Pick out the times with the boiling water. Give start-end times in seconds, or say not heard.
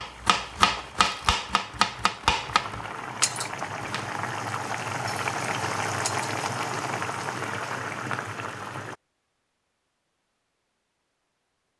0.0-8.9.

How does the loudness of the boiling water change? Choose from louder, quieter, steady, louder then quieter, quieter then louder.
louder.